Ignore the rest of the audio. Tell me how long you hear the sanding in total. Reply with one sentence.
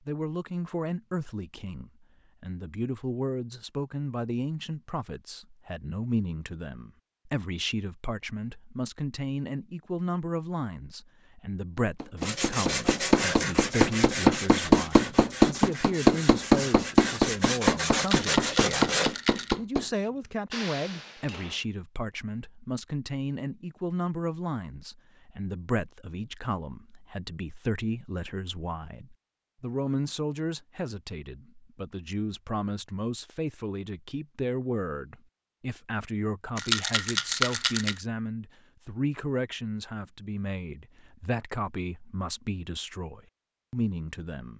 The sanding can be heard for 7 seconds in total.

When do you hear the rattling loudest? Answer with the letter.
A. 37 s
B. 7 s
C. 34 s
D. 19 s
A.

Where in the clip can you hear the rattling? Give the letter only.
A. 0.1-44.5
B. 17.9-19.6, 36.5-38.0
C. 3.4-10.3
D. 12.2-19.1
B.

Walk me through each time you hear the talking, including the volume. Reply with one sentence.
You can hear the talking from 0.1 to 44.5 s, at a steady volume.